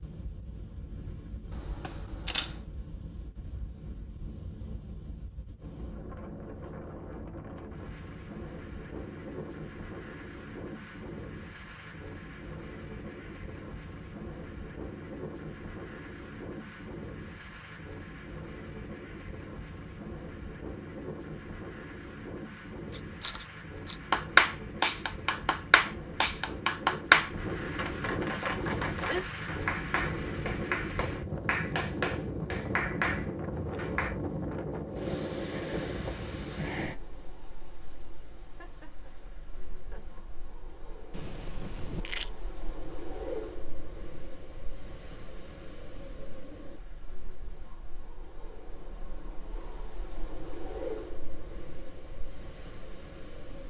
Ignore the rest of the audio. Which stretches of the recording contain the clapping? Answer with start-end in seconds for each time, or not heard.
24.1-34.1.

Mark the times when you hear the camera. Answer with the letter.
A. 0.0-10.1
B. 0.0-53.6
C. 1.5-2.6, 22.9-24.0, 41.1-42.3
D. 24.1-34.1
C.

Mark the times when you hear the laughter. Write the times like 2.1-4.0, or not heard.
38.5-40.3.